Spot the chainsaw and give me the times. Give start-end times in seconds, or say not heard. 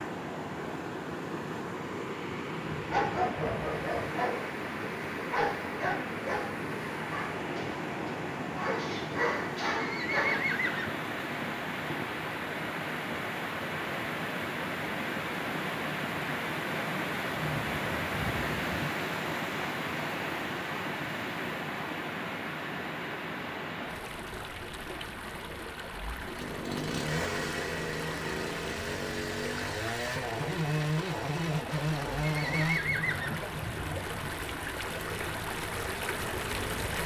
26.1-37.0.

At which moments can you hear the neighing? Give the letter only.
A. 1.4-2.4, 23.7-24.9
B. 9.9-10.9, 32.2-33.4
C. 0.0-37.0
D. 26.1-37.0
B.